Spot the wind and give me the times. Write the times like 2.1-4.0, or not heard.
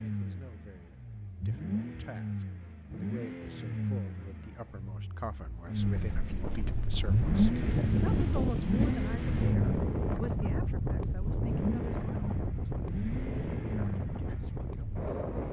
5.7-15.4.